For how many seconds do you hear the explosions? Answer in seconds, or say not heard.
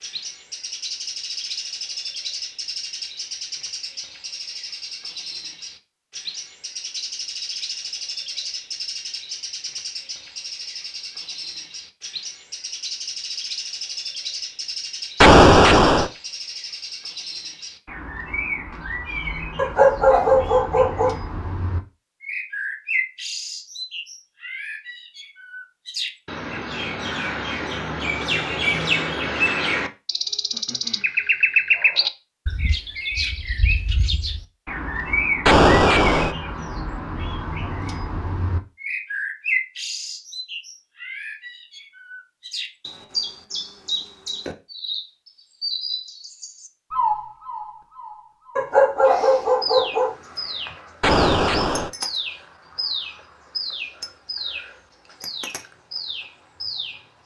3 s.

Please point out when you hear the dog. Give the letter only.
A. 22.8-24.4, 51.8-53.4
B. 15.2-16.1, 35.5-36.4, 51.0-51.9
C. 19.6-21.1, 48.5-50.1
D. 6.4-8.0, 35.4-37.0
C.